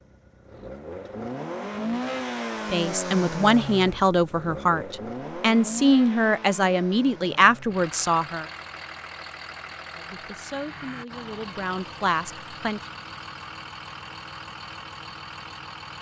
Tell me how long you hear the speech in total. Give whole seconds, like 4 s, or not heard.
9 s.